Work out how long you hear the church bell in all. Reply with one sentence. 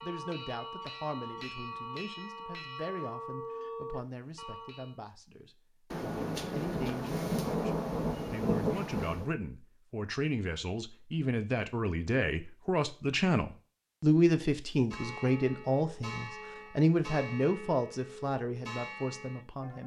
The church bell can be heard for 10 seconds in total.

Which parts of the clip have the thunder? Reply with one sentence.
The thunder can be heard from 5.9 to 9.3 s.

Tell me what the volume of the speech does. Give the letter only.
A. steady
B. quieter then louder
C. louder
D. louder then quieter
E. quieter
C.